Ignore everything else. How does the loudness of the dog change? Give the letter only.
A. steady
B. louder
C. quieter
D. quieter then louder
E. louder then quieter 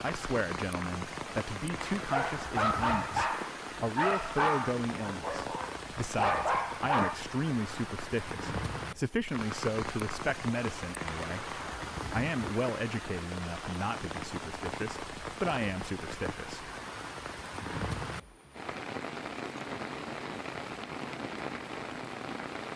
D.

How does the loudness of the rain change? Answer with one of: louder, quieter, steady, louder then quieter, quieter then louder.
steady.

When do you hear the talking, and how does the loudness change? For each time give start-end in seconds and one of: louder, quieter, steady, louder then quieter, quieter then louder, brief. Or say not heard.
0.0-16.7 steady.